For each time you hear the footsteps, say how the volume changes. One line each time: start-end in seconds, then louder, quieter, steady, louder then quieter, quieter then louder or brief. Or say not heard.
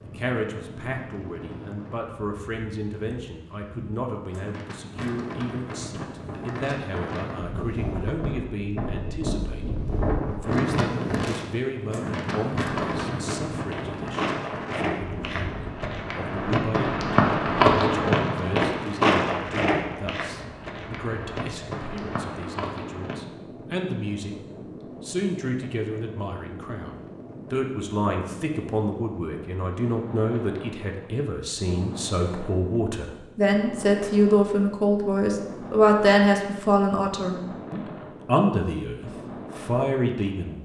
12.2-23.2 louder then quieter.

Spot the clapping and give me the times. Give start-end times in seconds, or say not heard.
not heard.